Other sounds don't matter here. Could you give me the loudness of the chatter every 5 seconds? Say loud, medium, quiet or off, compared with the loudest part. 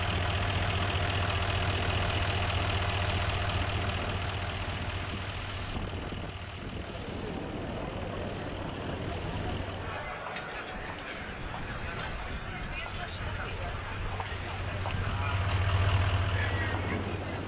off, loud, loud, loud.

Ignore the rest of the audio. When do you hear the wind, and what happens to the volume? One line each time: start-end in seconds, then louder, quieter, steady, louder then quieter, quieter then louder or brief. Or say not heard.
0.0-17.4 steady.